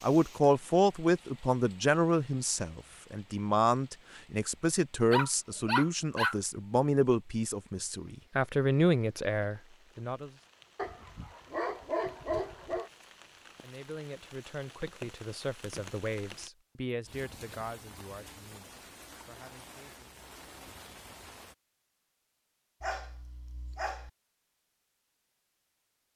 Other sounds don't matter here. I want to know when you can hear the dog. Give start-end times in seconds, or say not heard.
5.1-6.3, 10.8-12.9, 22.8-24.1.